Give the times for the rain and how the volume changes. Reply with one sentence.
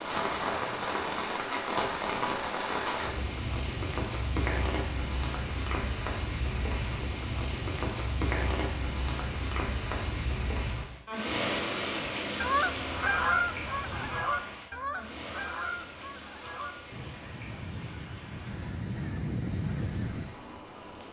You can hear the rain from 0.0 to 21.0 s, getting quieter.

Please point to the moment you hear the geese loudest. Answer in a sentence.
The volume of the geese peaks at 13 seconds.